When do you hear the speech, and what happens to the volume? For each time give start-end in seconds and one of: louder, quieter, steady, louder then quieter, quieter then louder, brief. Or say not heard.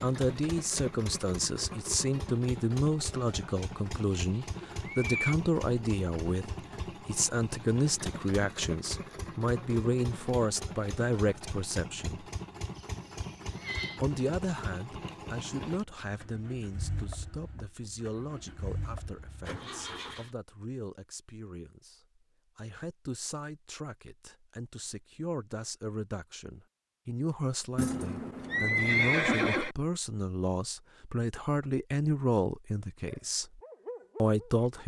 0.0-12.3 steady
13.9-34.8 quieter then louder.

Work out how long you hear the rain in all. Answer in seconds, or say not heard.
not heard.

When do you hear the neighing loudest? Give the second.
29 s.